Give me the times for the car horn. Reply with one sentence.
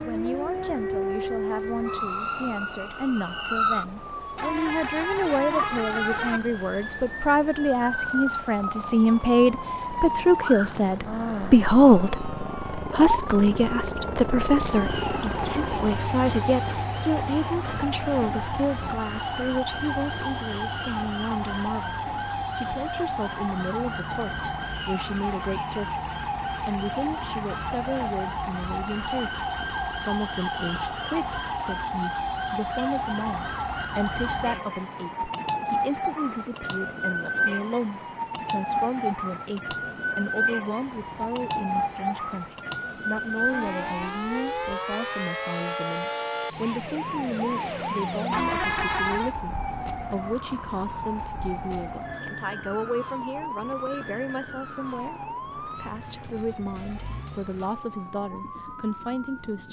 The car horn can be heard from 4.3 to 6.4 s and from 48.3 to 49.4 s.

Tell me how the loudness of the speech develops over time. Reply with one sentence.
The loudness of the speech goes down.